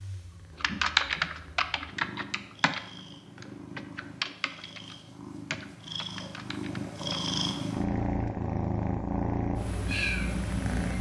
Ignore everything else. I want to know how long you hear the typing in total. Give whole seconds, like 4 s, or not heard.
6 s.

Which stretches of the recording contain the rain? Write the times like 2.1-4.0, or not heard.
not heard.